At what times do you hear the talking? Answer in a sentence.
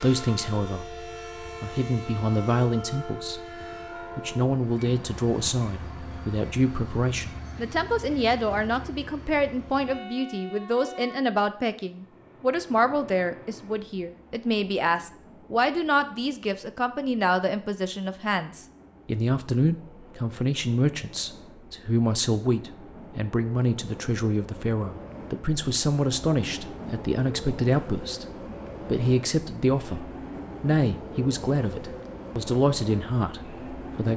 The talking can be heard from 0.0 to 3.5 s, from 4.2 to 28.2 s and from 28.9 to 34.1 s.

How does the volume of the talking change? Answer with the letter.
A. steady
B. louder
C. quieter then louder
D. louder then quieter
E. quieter
A.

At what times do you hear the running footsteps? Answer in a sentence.
You can't hear the running footsteps here.